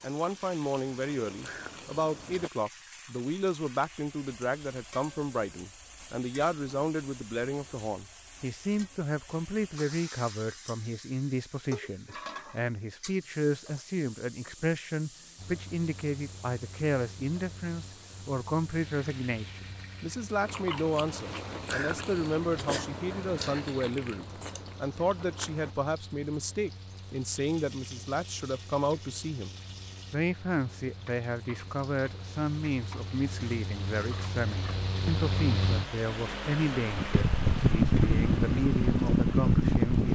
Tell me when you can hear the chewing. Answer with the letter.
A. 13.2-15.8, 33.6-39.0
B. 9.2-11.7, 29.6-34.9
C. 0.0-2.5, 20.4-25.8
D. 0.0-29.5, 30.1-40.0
C.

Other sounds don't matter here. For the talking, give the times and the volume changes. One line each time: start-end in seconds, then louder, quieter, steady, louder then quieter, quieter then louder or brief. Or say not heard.
0.0-29.5 steady
30.1-40.0 steady.